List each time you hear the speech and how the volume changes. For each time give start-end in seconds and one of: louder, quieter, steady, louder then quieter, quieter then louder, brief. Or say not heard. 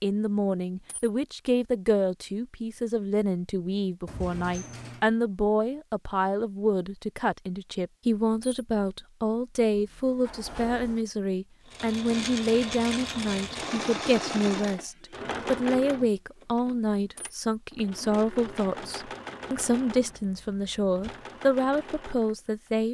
0.0-22.8 steady.